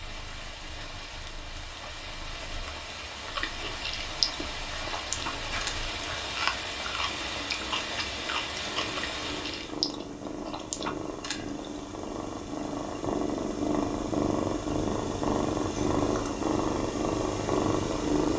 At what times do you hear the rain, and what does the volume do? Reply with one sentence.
The rain can be heard from 0.0 to 9.8 s, getting louder.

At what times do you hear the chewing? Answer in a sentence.
The chewing can be heard from 3.2 to 11.7 s.